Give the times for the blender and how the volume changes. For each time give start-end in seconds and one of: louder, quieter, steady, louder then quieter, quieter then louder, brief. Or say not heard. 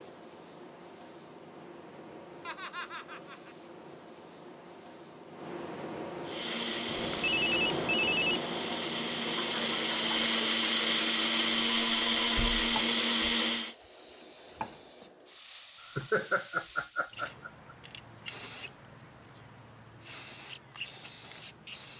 6.2-13.8 louder.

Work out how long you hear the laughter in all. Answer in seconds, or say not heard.
4 s.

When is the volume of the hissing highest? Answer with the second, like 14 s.
8 s.